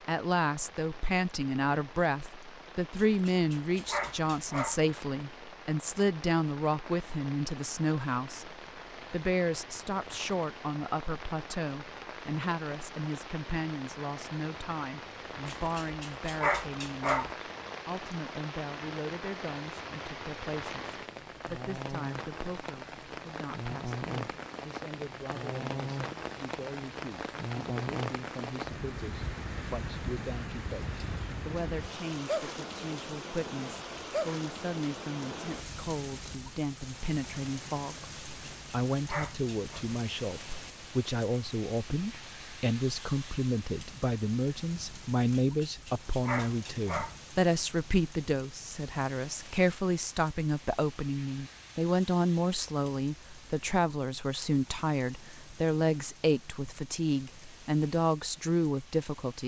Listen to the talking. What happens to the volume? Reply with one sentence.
The loudness of the talking goes down, then up.